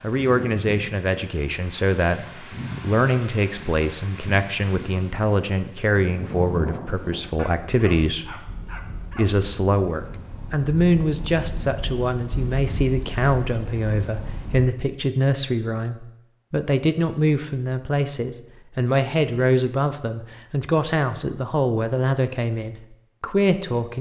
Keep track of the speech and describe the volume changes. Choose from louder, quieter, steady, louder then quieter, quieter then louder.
steady.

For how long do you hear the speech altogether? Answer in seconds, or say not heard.
24 s.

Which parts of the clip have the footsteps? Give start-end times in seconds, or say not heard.
not heard.